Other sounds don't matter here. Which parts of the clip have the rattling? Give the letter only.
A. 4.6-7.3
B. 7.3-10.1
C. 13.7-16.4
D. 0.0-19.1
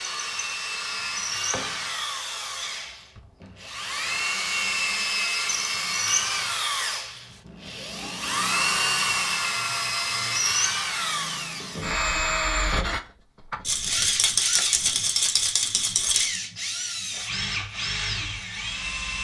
C.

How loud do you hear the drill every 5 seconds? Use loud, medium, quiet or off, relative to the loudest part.
loud, loud, loud, medium.